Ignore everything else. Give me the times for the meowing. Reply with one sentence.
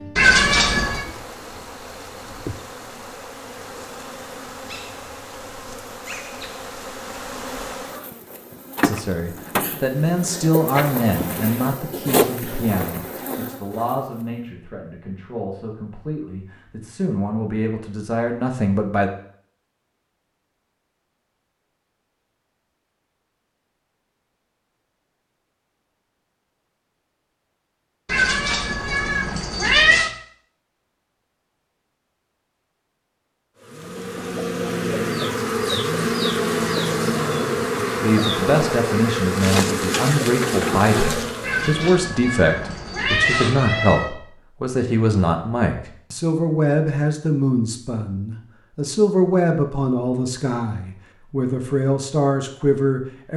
The meowing can be heard from 0.1 to 1.1 s, from 28.1 to 30.1 s and from 41.4 to 44.1 s.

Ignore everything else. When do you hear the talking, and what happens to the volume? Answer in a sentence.
You can hear the talking from 8.8 to 19.1 s, getting quieter then louder; and from 38.0 to 53.3 s, at a steady volume.